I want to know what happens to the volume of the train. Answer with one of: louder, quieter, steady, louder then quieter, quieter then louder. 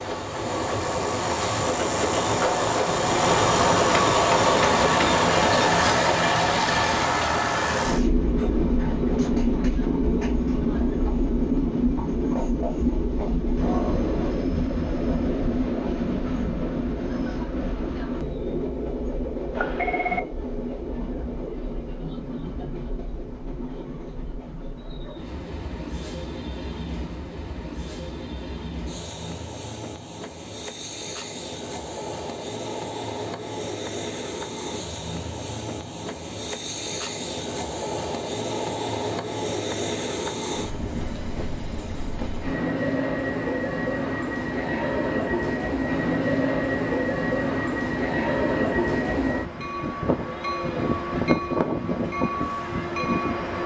quieter then louder.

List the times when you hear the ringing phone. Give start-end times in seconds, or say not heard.
19.6-20.2.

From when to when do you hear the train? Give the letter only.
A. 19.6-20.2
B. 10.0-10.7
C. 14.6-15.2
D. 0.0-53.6
D.